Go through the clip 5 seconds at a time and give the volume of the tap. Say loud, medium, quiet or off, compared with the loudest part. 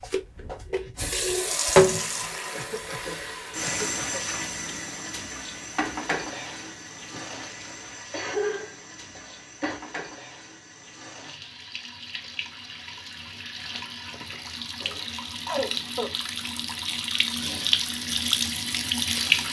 loud, medium, quiet, loud.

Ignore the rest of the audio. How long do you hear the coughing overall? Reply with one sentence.
You can hear the coughing for 6 seconds altogether.